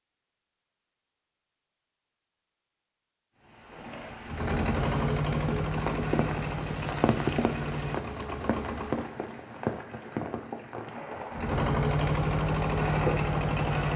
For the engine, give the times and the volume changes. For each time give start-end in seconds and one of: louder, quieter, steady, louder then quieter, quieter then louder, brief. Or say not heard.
4.2-9.1 quieter
11.3-13.9 brief.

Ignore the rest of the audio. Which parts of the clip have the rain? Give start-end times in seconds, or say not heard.
3.4-13.9.